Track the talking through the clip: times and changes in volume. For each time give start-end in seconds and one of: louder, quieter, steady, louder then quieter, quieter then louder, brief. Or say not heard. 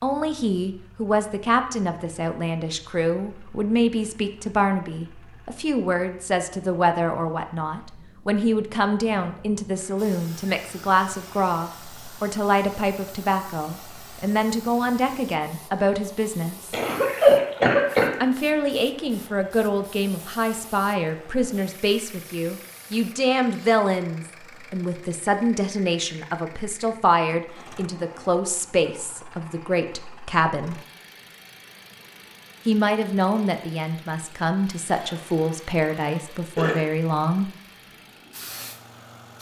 0.0-16.8 steady
18.2-30.8 steady
32.6-37.5 steady.